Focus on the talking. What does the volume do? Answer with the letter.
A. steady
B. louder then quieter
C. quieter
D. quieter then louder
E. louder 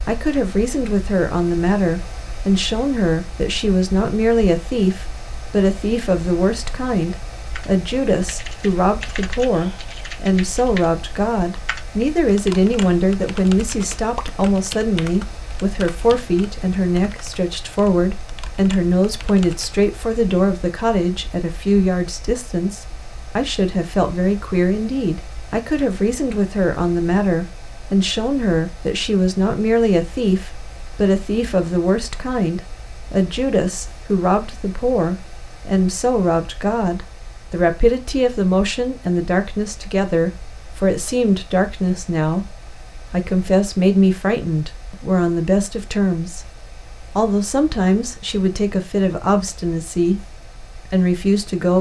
A.